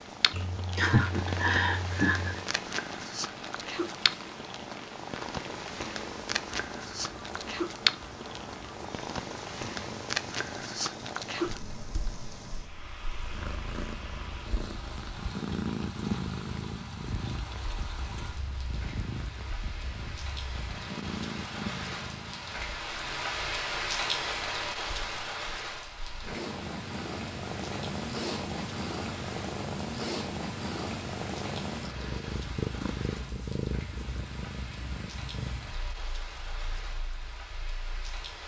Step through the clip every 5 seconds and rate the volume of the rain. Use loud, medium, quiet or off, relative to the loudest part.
medium, medium, medium, medium, loud, medium, medium, medium.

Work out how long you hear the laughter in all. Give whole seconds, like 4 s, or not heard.
2 s.